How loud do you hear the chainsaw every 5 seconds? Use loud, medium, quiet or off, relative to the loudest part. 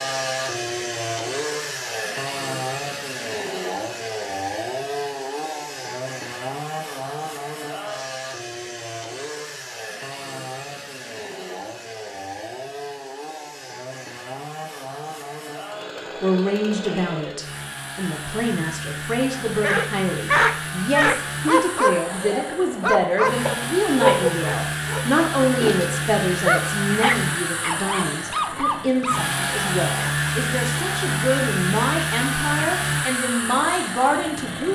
loud, medium, medium, medium, medium, loud, loud.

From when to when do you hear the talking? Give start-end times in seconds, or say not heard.
16.2-34.7.